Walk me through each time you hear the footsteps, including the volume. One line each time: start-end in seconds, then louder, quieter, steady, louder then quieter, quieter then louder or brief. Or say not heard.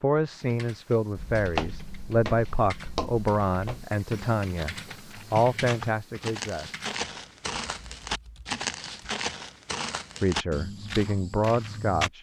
1.1-12.1 quieter then louder.